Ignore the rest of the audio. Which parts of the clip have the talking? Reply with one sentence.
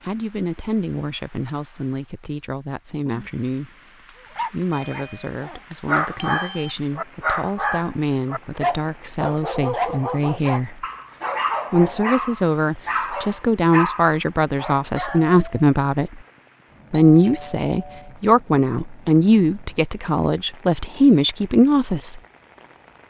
You can hear the talking from 0.1 to 3.7 s, from 4.3 to 10.8 s, from 11.7 to 16.2 s and from 16.9 to 22.2 s.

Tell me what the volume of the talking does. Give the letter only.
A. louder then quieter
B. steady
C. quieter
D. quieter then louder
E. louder
E.